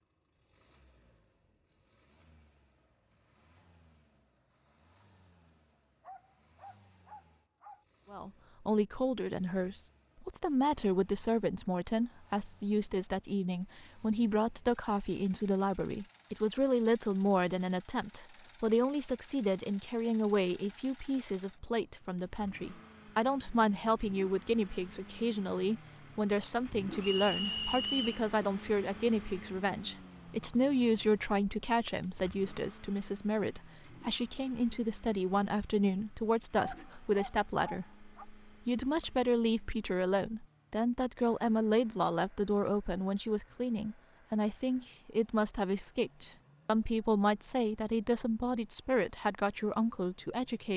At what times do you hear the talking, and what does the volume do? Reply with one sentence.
You can hear the talking from 8.1 to 50.7 s, at a steady volume.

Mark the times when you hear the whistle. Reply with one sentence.
The whistle can be heard from 27.0 to 28.2 s.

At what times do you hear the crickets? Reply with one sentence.
You can't hear the crickets here.